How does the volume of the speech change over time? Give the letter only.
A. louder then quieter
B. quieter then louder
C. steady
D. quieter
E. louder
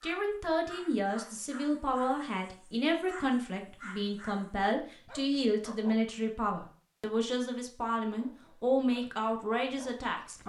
C.